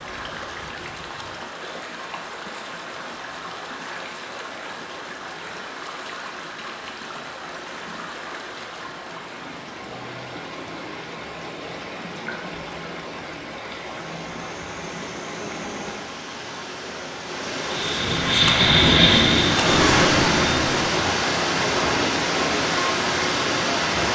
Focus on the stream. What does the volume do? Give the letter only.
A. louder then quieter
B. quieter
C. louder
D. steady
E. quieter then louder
C.